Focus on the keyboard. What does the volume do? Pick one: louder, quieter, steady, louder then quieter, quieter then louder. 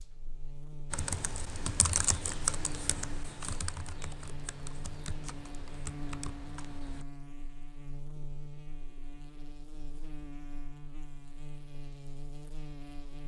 quieter.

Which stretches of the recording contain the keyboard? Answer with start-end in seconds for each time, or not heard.
0.9-7.0.